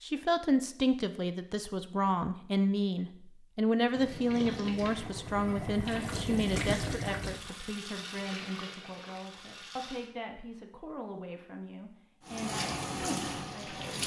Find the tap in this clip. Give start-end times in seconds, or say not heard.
3.9-10.1, 12.2-14.0.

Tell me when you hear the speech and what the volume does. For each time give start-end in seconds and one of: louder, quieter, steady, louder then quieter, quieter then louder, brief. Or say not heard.
0.0-13.9 quieter.